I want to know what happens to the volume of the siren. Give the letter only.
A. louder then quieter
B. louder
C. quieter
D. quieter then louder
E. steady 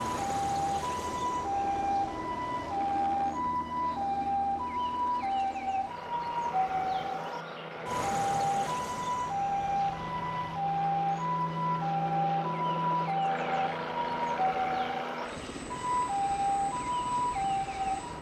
E.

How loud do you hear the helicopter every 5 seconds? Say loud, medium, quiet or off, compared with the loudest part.
medium, medium, loud, medium.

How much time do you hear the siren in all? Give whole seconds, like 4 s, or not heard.
18 s.